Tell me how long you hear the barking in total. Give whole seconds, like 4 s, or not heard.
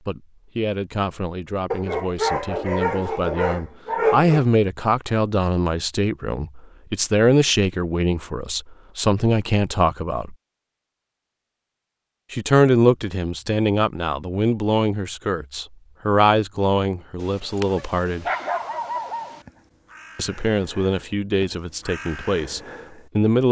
5 s.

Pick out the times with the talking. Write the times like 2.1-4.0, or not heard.
0.1-10.3, 12.3-18.2, 20.1-23.4.